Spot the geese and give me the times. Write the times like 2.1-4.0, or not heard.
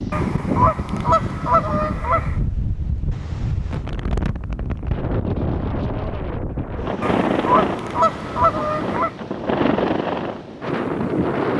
0.1-2.4, 7.0-9.2.